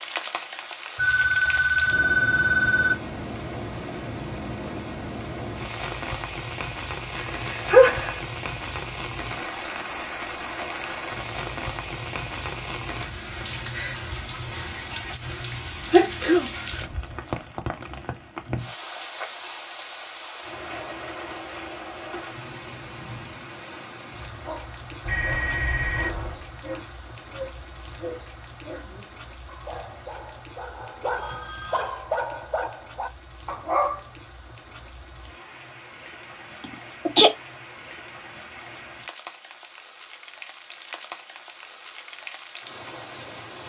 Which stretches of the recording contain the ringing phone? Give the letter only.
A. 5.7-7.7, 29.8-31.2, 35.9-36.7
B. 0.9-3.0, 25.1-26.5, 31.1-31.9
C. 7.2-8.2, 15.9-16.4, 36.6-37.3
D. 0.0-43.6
B.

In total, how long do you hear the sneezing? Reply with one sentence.
You can hear the sneezing for 2 seconds altogether.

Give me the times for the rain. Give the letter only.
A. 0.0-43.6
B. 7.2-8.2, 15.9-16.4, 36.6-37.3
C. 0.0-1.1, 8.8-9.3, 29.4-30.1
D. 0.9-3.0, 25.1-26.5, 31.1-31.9
A.